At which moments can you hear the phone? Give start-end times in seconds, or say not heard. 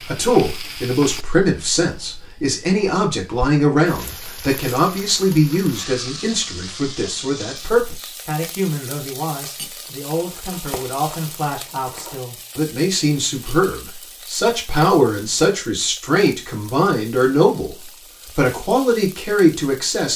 not heard.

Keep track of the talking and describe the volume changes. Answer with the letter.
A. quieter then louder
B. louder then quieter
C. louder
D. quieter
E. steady
A.